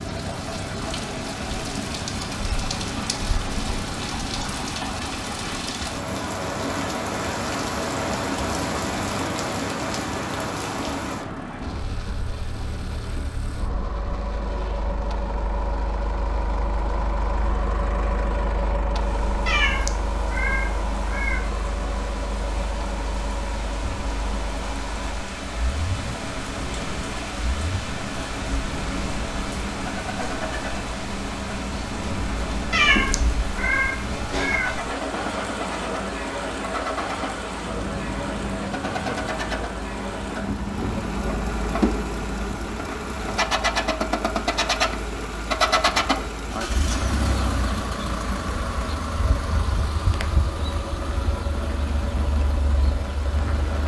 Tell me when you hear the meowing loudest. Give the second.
33 s.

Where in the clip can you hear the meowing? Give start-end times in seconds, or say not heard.
19.4-21.4, 32.7-34.8.